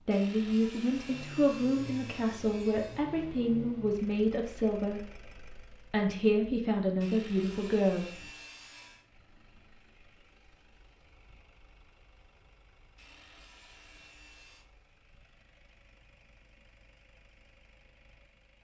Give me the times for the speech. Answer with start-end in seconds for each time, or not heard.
0.1-8.1.